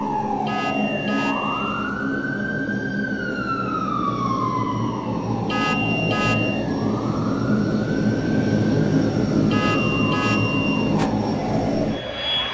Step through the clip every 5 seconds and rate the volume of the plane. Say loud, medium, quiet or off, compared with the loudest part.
medium, loud, loud.